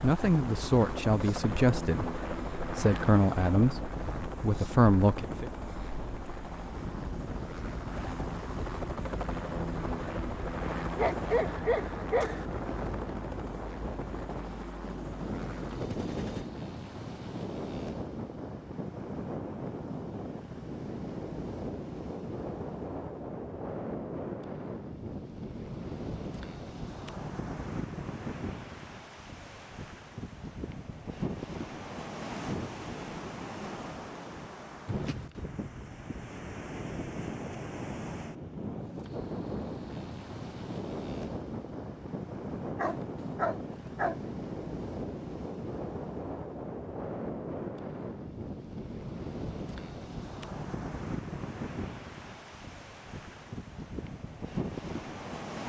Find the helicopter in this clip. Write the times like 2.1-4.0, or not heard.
0.0-16.5.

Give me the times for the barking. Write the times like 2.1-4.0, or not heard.
10.9-12.4, 42.8-44.1.